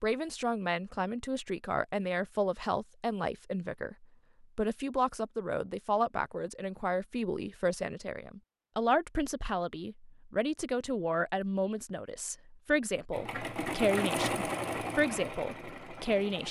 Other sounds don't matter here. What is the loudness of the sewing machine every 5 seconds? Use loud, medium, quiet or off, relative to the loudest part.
off, off, loud, medium.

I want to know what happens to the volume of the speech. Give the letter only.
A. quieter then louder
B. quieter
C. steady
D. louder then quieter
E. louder
C.